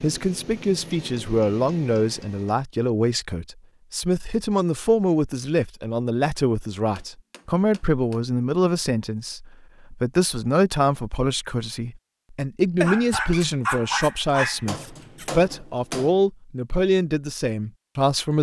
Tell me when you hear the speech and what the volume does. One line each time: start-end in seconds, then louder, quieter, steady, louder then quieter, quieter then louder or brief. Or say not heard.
0.0-18.3 steady.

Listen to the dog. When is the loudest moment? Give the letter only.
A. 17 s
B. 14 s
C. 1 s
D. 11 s
B.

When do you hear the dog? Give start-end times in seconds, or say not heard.
12.8-15.3.